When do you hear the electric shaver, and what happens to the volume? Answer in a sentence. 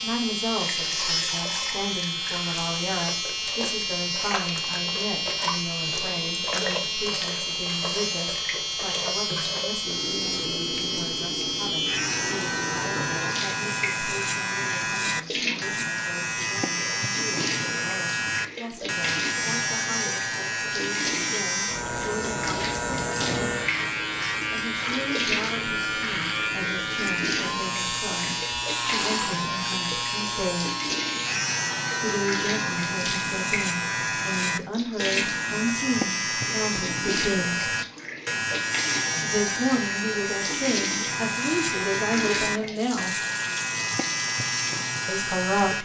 You can hear the electric shaver from 0.0 to 45.7 s, at a steady volume.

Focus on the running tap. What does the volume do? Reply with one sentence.
The loudness of the running tap stays about the same.